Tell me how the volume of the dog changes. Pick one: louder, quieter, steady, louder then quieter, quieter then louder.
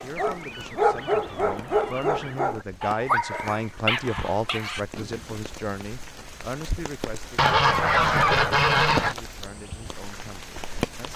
quieter.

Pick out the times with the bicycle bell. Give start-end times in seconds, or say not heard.
not heard.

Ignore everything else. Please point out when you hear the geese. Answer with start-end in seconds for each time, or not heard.
0.1-2.5, 7.3-9.2.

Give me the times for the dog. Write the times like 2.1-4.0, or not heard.
0.0-5.5.